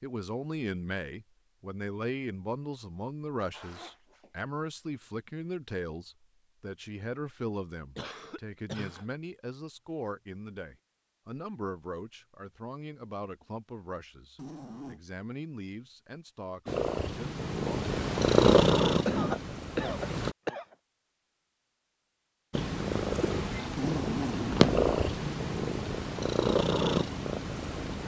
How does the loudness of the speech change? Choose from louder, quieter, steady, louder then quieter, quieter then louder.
quieter.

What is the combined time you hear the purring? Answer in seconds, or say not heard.
9 s.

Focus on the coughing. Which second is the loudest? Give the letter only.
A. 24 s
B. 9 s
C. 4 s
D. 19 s
D.